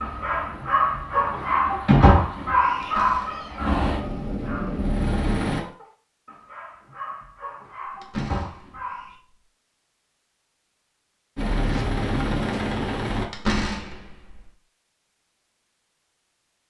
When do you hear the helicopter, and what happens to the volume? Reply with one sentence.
The helicopter can be heard from 0.0 to 5.7 s, getting louder; and briefly from 11.3 to 13.2 s.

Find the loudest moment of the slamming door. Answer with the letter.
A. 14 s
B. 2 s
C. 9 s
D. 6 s
A.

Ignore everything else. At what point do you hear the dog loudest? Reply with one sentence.
The loudest moment of the dog is at 2 seconds.